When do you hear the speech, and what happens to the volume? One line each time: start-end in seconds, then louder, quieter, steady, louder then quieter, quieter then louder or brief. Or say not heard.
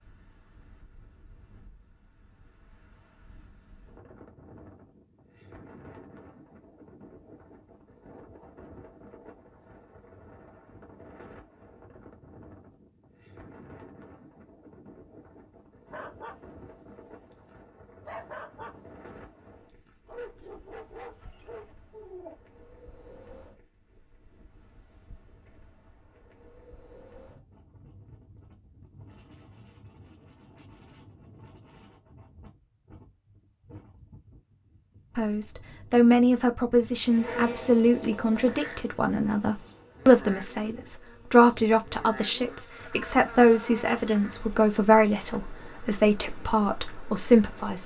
35.1-47.8 steady.